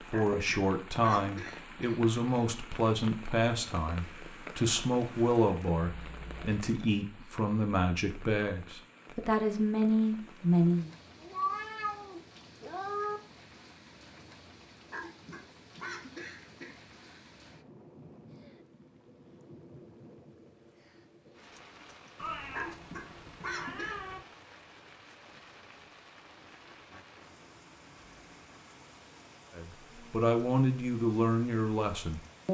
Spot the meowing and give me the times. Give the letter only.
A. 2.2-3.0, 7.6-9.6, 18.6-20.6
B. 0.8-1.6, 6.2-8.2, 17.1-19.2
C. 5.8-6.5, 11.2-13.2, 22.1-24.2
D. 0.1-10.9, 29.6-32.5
C.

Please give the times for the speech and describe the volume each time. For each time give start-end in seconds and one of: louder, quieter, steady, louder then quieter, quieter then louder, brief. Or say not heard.
0.1-10.9 steady
29.6-32.5 brief.